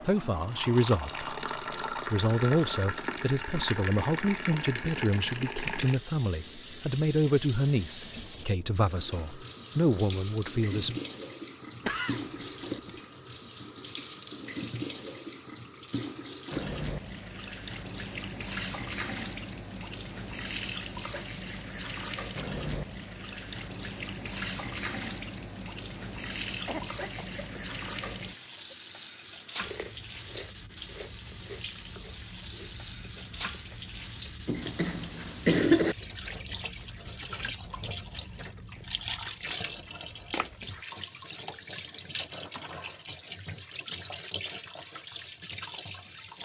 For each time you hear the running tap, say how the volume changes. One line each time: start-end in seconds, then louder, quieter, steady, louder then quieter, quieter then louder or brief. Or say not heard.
0.0-46.4 steady.